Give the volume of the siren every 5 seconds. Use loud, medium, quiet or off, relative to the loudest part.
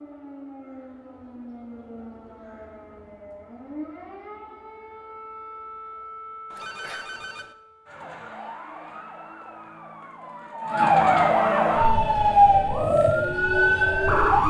quiet, quiet, loud.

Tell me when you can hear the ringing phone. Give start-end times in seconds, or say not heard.
6.5-7.5.